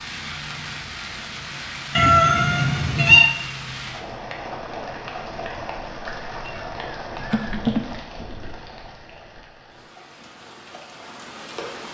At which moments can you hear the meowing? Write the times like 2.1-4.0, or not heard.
1.9-3.3, 6.5-7.8.